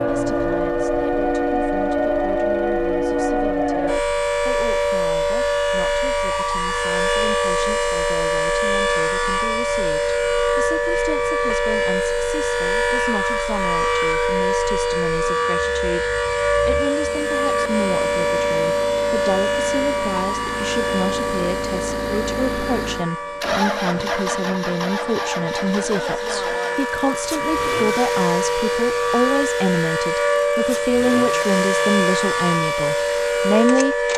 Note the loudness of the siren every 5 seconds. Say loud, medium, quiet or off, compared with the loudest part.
loud, loud, loud, loud, medium, loud, loud.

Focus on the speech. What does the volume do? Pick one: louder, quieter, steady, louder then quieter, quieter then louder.
louder.